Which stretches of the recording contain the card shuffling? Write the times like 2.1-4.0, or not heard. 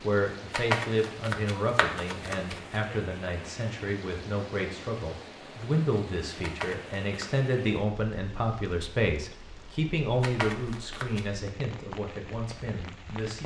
0.5-2.6, 6.4-7.4, 10.2-11.2.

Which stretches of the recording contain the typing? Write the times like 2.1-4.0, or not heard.
not heard.